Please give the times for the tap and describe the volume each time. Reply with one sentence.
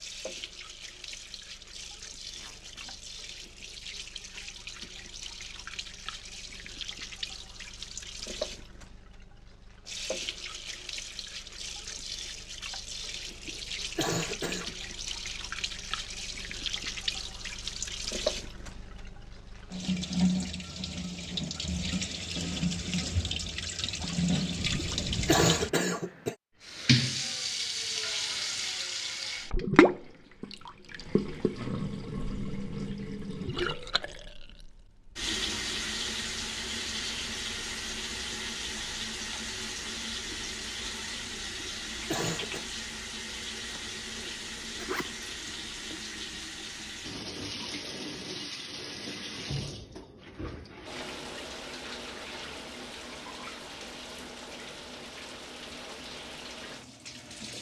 The tap can be heard from 0.0 to 57.5 s, getting louder then quieter.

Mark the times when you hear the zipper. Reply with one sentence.
You can hear the zipper from 2.4 to 3.0 s, from 24.6 to 25.4 s and from 43.6 to 46.0 s.